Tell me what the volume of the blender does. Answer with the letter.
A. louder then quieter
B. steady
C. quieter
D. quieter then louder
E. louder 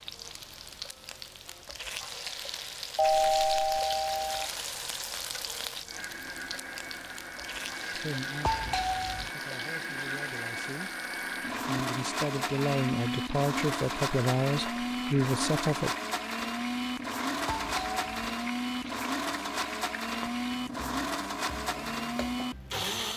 E.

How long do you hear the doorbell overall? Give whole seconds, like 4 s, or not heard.
3 s.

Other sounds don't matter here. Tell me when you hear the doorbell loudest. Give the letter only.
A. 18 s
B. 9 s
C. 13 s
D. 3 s
D.